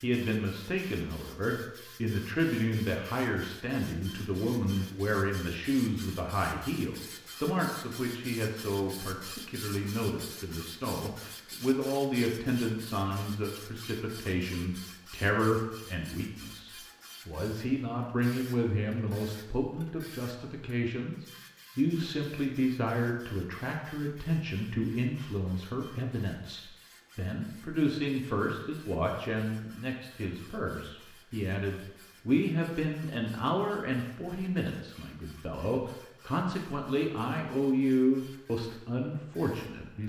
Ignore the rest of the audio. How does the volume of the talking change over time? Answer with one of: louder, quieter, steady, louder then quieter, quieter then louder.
steady.